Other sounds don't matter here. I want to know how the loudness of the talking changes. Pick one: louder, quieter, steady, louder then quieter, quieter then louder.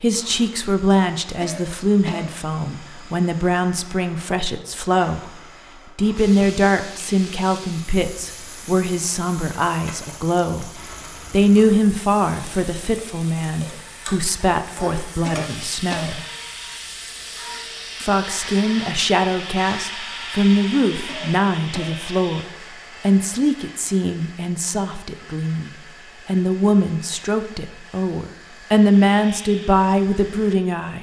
steady.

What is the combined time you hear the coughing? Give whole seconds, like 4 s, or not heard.
3 s.